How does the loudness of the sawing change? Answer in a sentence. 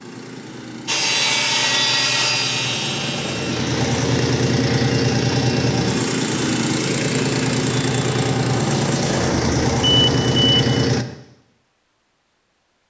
The loudness of the sawing goes down.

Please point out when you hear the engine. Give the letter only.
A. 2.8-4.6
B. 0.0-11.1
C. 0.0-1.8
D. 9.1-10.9
B.